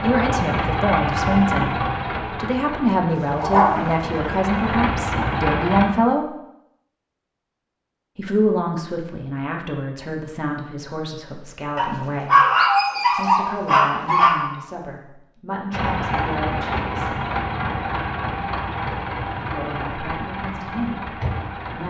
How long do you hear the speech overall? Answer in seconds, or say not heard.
17 s.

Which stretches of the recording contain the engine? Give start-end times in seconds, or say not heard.
0.0-5.9, 15.7-21.8.